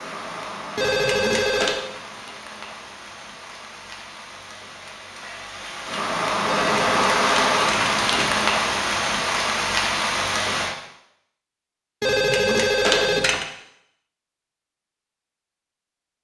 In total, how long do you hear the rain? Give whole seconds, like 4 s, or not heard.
11 s.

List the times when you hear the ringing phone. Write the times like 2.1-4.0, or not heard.
0.8-1.9, 6.5-8.4, 12.0-13.4.